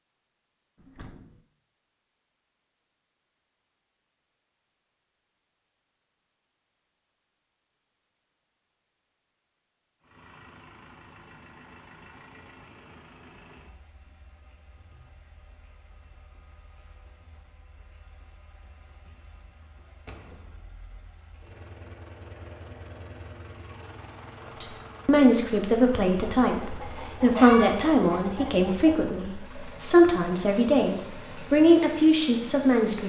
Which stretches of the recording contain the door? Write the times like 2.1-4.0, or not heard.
0.8-1.4, 20.1-20.9.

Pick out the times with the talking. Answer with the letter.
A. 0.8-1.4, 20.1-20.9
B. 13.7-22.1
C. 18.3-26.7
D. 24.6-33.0
D.